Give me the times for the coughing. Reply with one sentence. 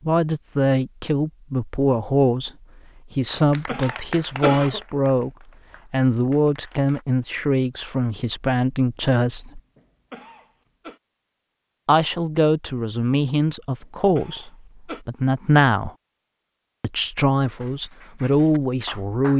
The coughing can be heard from 3.1 to 4.8 s, from 9.6 to 11.0 s and from 13.8 to 15.1 s.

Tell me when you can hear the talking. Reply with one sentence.
You can hear the talking from 0.1 to 2.5 s, from 3.1 to 5.3 s, from 5.9 to 9.6 s, from 11.8 to 15.9 s and from 16.8 to 19.3 s.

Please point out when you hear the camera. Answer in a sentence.
The camera can't be heard in this clip.